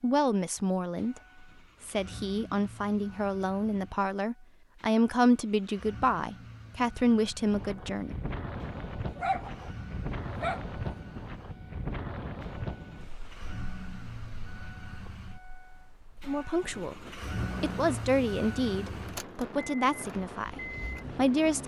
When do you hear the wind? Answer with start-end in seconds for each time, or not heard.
7.5-21.6.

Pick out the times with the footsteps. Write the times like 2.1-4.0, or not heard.
not heard.